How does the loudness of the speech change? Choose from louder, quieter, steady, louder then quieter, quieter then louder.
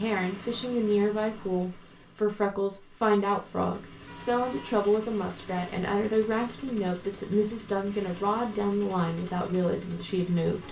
steady.